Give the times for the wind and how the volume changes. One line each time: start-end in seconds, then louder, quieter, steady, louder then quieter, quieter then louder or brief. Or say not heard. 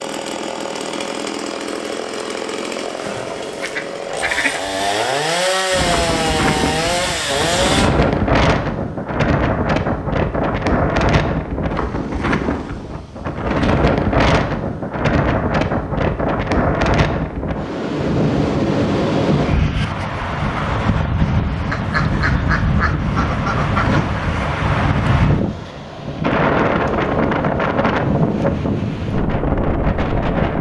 5.7-30.5 steady.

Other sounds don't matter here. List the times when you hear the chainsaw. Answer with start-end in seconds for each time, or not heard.
0.0-7.9.